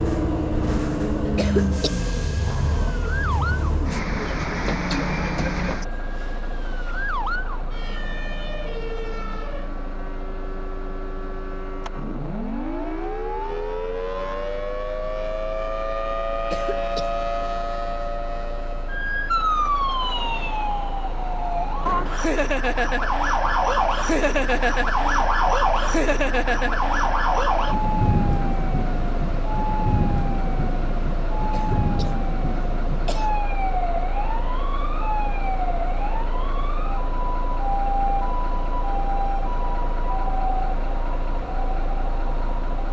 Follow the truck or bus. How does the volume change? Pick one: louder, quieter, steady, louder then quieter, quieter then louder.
quieter then louder.